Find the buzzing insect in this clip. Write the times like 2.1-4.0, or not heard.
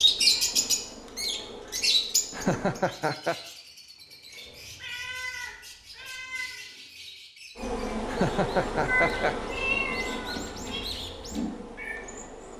0.0-2.8, 7.5-12.5.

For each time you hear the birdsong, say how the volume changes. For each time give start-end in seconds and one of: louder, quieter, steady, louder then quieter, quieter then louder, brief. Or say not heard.
0.0-12.2 quieter then louder.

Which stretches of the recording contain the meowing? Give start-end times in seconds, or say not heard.
0.3-1.8, 4.6-6.6, 8.8-10.8.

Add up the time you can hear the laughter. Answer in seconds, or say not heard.
2 s.